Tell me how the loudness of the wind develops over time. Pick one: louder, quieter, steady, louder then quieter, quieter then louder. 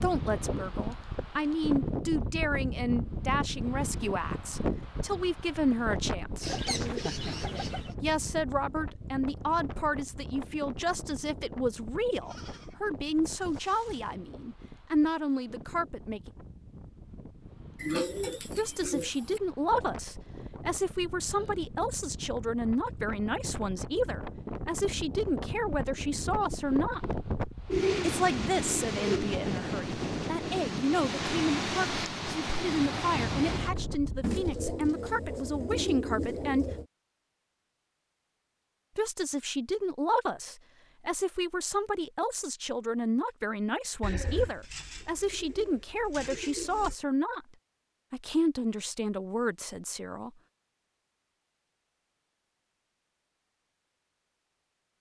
quieter then louder.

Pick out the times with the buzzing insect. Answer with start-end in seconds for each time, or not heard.
not heard.